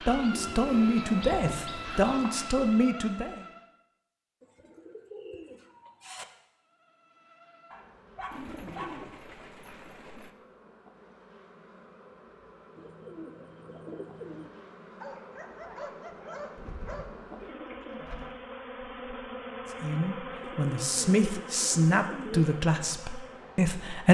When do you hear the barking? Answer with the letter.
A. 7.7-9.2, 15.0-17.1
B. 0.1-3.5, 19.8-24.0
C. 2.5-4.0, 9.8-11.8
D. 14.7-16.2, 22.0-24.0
A.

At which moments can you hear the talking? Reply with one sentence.
You can hear the talking from 0.1 to 3.5 s and from 19.8 to 24.0 s.